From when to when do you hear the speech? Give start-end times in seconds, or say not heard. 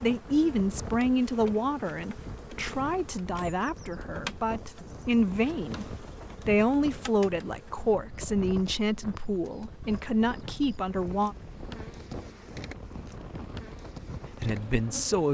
0.0-11.3, 14.4-15.3.